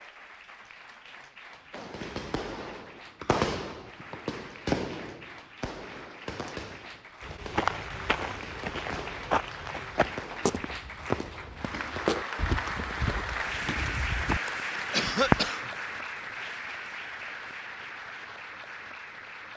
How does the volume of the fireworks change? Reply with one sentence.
The volume of the fireworks goes down.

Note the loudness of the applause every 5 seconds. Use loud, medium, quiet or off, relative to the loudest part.
quiet, medium, loud, loud.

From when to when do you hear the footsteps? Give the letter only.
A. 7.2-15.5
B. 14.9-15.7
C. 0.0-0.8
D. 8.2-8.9
A.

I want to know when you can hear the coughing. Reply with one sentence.
The coughing can be heard from 14.9 to 15.7 s.